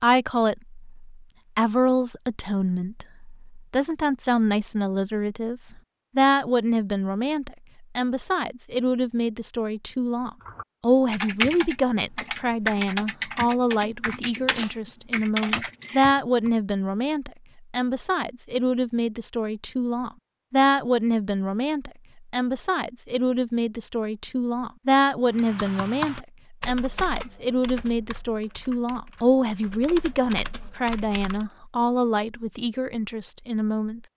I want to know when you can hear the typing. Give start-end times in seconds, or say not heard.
10.4-16.5, 25.3-31.4.